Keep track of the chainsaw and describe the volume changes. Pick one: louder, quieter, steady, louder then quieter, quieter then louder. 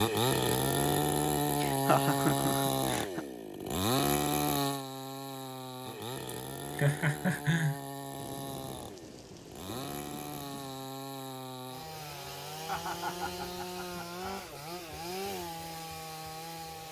quieter.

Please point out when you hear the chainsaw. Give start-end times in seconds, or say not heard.
0.0-16.8.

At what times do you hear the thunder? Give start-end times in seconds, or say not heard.
8.2-10.8.